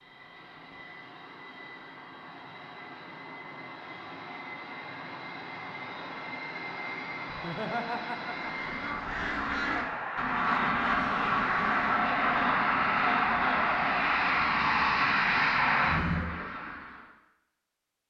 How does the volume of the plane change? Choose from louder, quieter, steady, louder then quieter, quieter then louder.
louder.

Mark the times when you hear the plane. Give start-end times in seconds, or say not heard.
0.0-16.3.